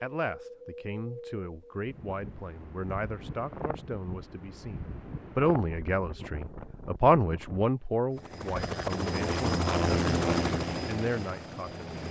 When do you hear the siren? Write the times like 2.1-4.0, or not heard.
not heard.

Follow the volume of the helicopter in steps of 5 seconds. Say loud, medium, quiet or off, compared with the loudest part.
off, loud, loud.